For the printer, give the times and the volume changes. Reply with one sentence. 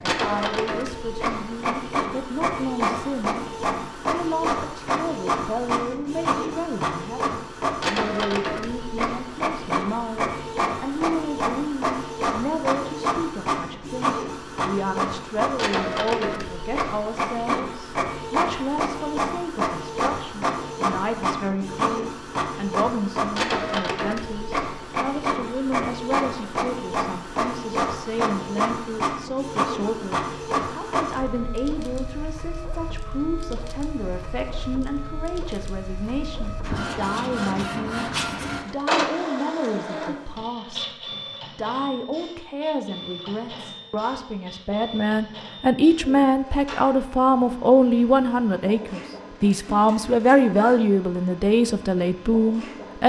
You can hear the printer from 0.0 to 53.0 s, getting quieter.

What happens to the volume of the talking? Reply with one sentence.
The loudness of the talking goes up.